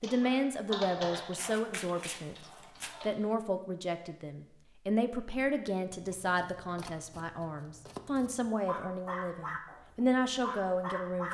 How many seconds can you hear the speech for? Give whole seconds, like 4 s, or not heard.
11 s.